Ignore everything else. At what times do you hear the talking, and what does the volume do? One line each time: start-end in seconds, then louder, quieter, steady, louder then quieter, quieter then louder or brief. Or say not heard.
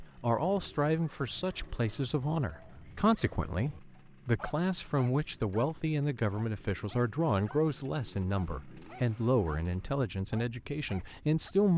0.0-11.7 steady.